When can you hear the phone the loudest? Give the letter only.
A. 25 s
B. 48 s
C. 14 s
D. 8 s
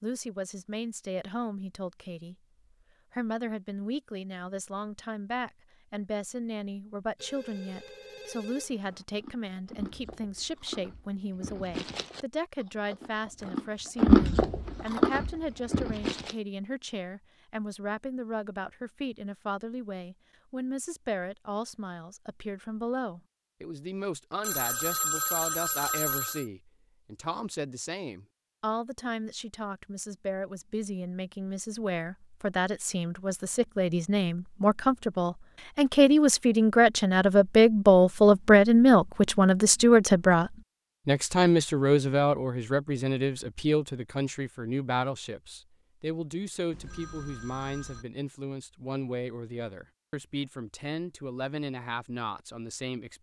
A.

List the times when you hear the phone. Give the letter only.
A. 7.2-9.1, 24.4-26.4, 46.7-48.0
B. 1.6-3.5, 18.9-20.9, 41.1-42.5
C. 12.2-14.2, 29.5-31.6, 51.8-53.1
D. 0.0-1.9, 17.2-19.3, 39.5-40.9
A.